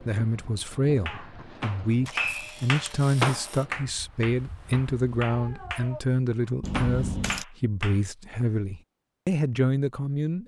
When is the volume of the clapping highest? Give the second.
3 s.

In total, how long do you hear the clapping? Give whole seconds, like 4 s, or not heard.
6 s.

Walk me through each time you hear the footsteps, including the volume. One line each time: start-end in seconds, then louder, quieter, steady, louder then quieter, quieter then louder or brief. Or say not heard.
not heard.